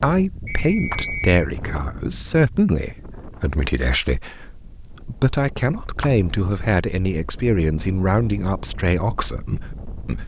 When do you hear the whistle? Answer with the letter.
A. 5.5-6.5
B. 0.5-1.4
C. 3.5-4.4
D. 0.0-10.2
B.